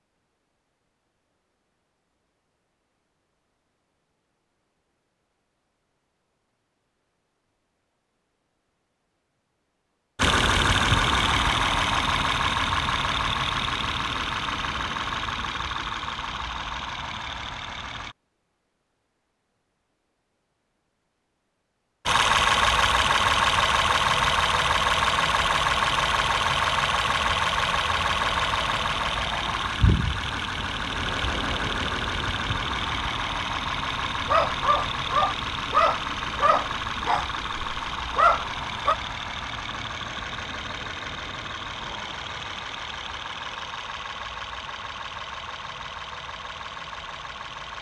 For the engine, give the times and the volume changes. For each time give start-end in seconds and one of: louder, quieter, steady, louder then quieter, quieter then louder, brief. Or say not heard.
10.2-18.1 quieter
22.1-47.7 quieter.